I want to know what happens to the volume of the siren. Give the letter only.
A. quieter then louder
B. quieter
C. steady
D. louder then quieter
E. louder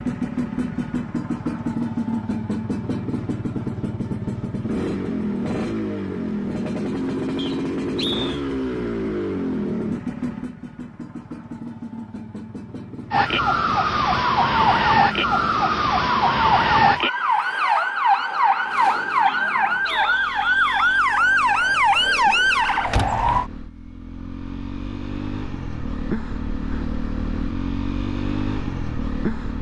C.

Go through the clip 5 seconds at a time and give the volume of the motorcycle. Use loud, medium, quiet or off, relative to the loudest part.
loud, loud, medium, quiet, quiet, loud.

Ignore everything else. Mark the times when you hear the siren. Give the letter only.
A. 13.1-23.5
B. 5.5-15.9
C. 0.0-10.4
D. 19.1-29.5
A.